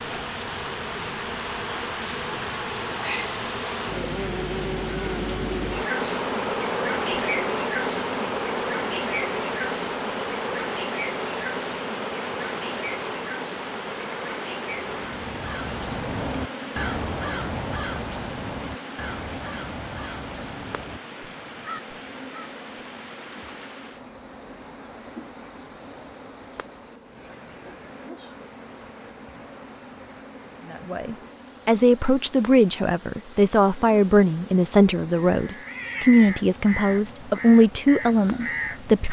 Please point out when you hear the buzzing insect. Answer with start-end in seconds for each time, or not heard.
0.0-39.0.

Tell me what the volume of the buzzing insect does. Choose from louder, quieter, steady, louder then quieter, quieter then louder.
quieter.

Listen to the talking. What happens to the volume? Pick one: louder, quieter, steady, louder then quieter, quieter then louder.
steady.